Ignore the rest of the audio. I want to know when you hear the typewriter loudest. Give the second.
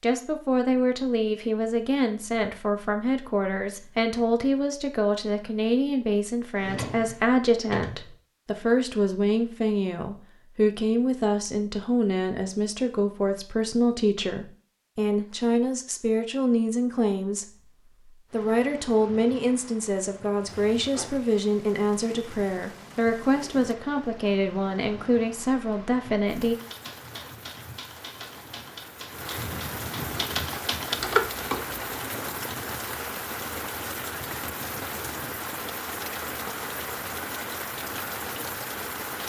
31 s.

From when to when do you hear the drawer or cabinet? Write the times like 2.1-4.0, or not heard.
6.5-8.1.